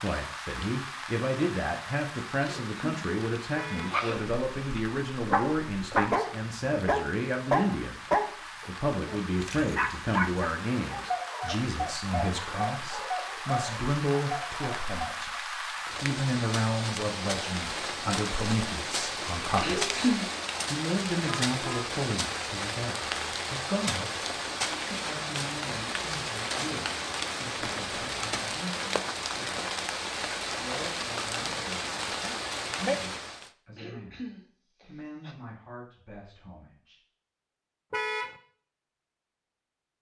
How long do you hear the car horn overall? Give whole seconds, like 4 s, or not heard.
2 s.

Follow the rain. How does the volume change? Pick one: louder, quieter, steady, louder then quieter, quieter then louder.
louder.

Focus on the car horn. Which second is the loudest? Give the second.
38 s.